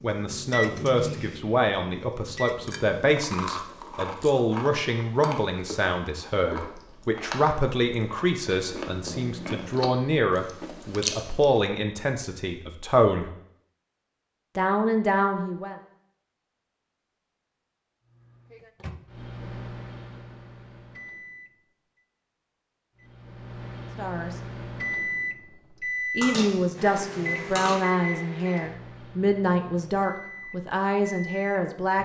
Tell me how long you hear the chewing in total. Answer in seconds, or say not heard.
9 s.